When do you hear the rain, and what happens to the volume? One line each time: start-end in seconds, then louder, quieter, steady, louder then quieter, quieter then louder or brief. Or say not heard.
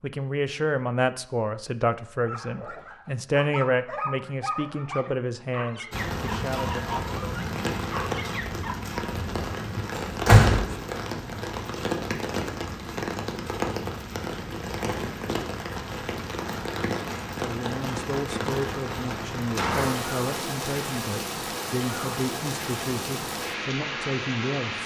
5.9-24.8 steady.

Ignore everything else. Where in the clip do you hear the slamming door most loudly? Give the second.
10 s.